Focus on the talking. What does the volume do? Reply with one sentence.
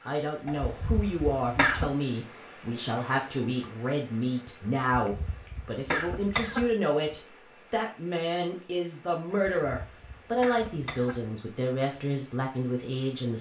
The volume of the talking stays about the same.